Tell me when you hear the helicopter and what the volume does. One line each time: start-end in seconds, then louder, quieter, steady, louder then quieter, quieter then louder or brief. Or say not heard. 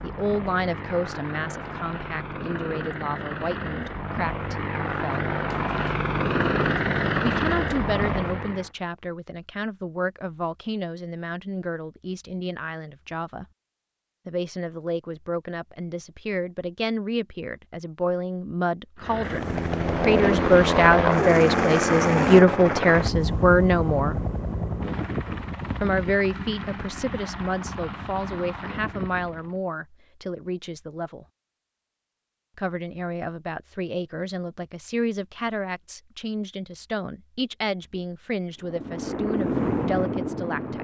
0.0-8.7 louder
19.0-29.6 quieter
38.5-40.8 brief.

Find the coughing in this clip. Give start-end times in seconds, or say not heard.
not heard.